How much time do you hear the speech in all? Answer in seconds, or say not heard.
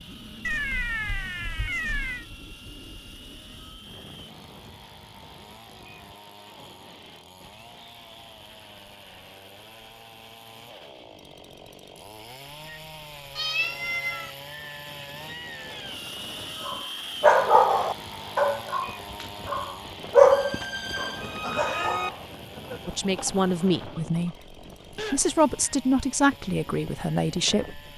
5 s.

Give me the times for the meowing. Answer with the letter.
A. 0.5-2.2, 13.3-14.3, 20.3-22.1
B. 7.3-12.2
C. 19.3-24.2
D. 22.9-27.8
A.